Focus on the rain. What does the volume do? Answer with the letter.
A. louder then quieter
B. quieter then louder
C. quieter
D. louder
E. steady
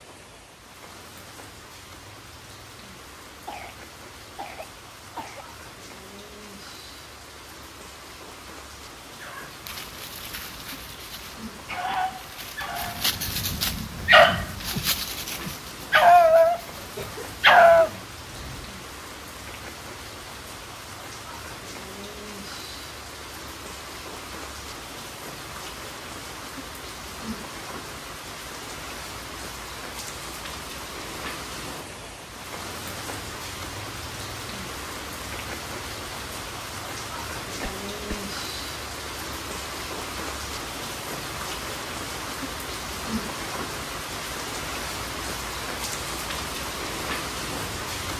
D.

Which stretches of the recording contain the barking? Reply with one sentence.
You can hear the barking from 9.2 to 17.9 s.